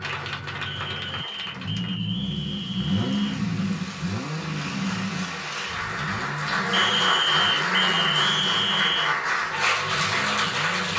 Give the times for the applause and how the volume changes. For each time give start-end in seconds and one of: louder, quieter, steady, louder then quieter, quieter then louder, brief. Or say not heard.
0.0-10.9 louder.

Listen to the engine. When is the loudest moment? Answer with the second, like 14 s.
3 s.